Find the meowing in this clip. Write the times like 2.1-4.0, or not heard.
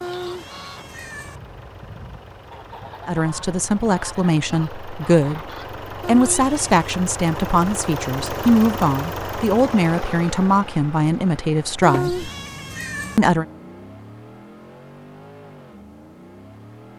0.0-1.4, 6.0-6.9, 11.8-13.2.